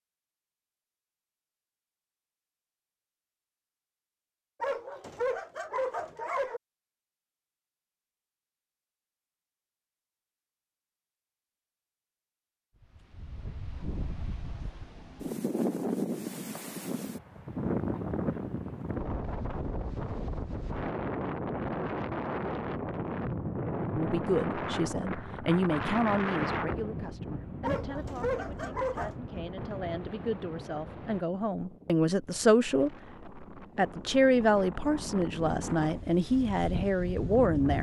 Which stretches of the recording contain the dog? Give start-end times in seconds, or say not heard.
4.6-6.6, 27.6-29.1.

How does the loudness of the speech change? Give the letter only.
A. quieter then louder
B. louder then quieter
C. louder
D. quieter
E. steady
A.